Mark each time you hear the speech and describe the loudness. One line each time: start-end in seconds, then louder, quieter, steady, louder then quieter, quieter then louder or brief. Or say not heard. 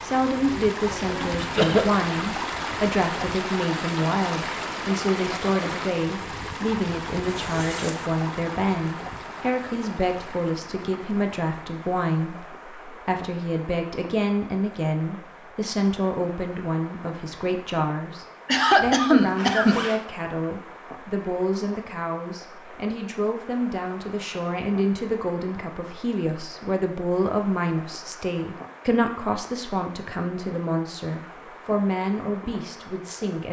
0.0-33.4 steady.